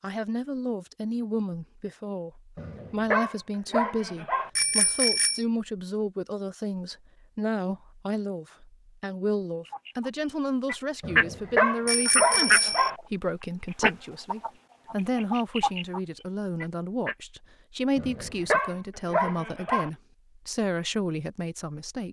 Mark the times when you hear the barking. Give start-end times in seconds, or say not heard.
2.5-4.5, 11.0-12.9, 17.9-19.9.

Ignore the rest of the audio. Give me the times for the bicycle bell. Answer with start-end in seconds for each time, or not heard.
4.5-5.4, 11.8-12.9.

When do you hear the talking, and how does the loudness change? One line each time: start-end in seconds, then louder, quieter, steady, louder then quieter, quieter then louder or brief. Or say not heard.
0.0-22.0 steady.